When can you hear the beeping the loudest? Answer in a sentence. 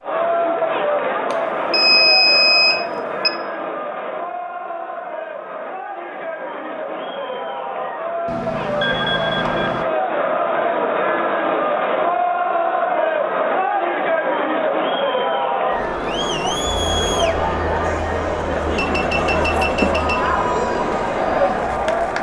The loudest moment of the beeping is at 2 seconds.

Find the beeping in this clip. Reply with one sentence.
The beeping can be heard from 1.3 to 3.3 s, from 8.2 to 9.8 s and from 18.8 to 20.3 s.